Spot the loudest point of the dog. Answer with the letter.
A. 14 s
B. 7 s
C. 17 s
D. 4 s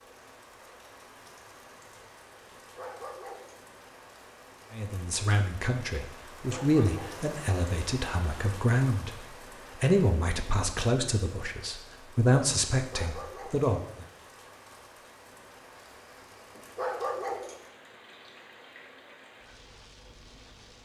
C.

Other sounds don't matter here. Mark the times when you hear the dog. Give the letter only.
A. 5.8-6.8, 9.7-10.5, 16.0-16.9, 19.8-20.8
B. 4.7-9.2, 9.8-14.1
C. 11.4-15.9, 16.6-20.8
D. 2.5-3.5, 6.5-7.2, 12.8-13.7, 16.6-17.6
D.